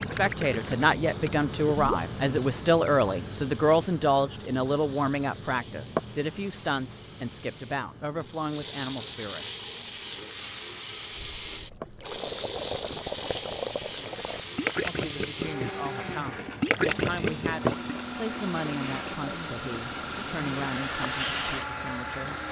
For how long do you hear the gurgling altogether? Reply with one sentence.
You can hear the gurgling for 9 seconds altogether.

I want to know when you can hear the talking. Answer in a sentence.
The talking can be heard from 0.0 to 9.6 s and from 14.8 to 22.4 s.